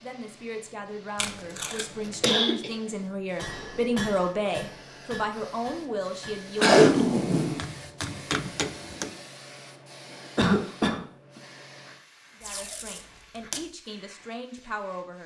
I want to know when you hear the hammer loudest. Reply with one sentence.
The loudest moment of the hammer is at 8 seconds.